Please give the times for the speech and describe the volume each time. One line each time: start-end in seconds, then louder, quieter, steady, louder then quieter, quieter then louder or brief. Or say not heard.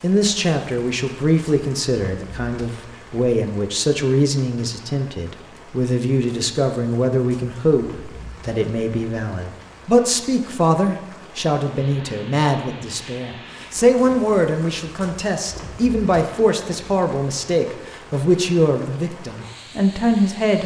0.0-20.6 steady.